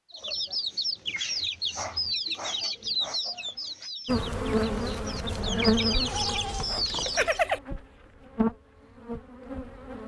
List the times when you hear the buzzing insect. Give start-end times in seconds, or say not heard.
4.0-10.0.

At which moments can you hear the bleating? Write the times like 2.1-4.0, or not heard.
5.6-7.6.